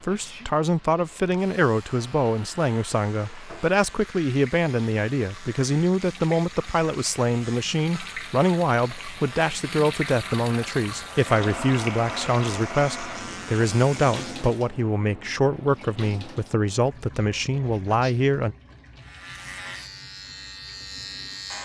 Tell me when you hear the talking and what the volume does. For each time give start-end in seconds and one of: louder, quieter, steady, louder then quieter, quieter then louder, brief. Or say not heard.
0.0-18.6 steady.